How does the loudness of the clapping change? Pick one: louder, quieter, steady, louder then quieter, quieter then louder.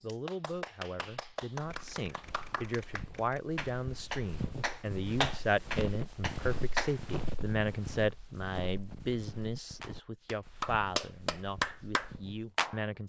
louder.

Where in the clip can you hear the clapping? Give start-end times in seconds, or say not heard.
0.0-7.0, 9.8-12.8.